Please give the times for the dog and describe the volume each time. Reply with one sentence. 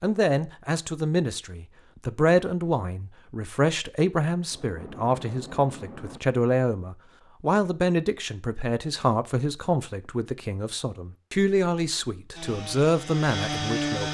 The dog can't be heard in this clip.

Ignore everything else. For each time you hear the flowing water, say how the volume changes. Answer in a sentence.
You can't hear the flowing water here.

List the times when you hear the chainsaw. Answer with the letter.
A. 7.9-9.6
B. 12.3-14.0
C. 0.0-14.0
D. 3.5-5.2
B.